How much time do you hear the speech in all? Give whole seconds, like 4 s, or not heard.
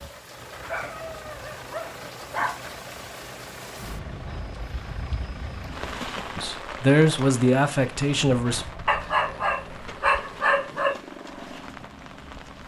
2 s.